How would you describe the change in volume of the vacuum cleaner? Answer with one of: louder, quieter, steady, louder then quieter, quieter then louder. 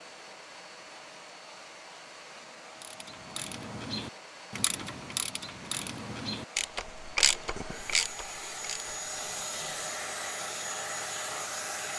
louder.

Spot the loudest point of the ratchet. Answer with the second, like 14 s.
7 s.